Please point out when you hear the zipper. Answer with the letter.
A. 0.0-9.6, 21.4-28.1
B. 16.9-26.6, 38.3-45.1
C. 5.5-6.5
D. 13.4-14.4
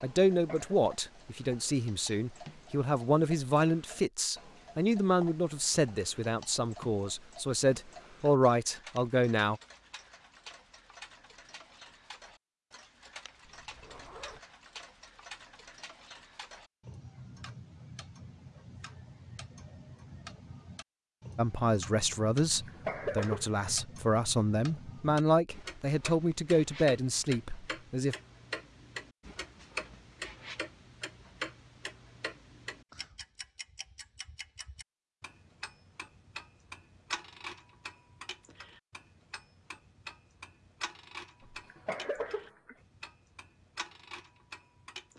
D.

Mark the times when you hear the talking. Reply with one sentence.
The talking can be heard from 0.0 to 9.6 s and from 21.4 to 28.1 s.